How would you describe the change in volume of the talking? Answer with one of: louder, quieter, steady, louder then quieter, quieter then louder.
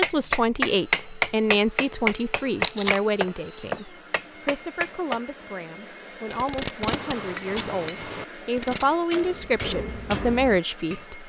quieter then louder.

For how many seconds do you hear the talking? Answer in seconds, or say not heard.
11 s.